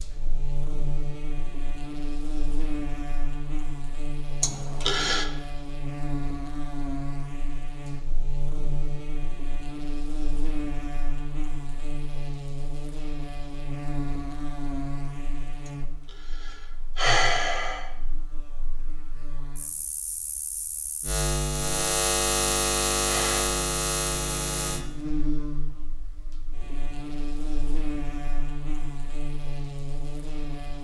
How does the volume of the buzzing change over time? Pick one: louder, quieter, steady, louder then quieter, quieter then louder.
louder then quieter.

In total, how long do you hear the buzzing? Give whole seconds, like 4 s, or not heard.
31 s.